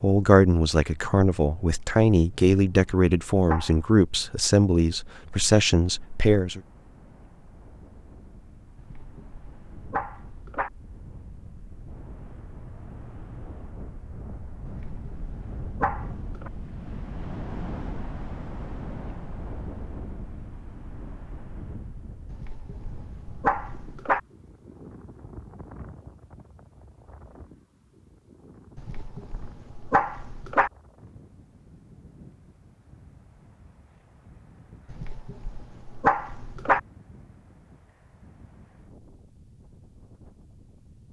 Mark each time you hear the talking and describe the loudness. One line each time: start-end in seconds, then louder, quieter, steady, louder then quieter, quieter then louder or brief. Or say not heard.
0.0-6.6 steady.